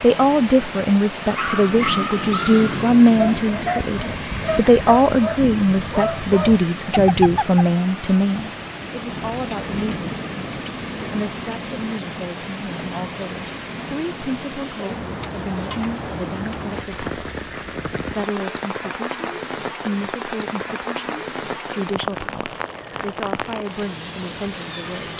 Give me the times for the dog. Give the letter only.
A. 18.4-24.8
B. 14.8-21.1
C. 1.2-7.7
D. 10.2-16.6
C.